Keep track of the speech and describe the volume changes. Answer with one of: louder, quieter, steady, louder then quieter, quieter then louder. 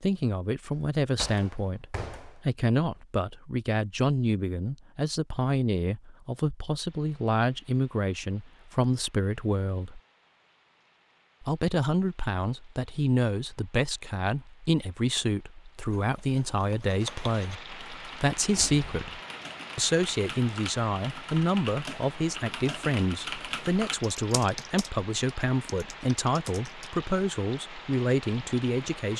steady.